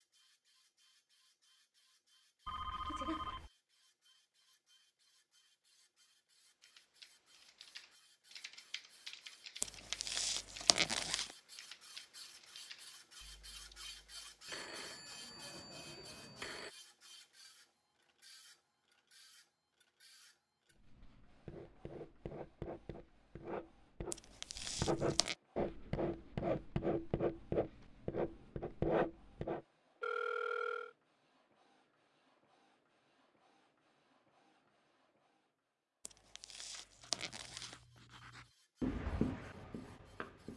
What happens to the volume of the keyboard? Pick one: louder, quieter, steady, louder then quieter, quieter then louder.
louder then quieter.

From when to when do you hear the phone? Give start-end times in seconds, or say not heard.
2.5-3.5, 14.4-16.7, 30.0-30.9.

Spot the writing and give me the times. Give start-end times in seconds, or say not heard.
20.8-29.6, 37.0-40.5.